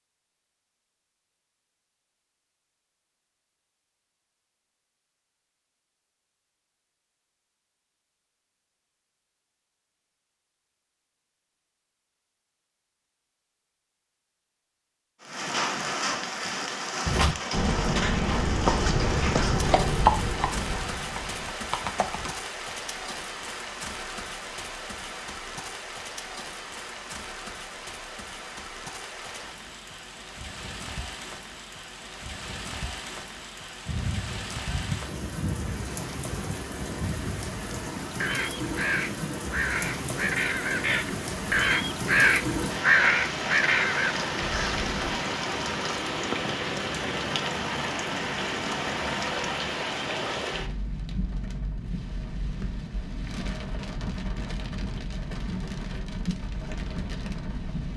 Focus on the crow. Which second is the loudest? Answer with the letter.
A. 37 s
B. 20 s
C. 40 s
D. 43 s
D.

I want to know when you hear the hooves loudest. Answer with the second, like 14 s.
20 s.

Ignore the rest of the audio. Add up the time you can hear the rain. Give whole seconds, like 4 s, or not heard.
43 s.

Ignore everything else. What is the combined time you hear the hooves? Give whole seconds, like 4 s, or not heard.
5 s.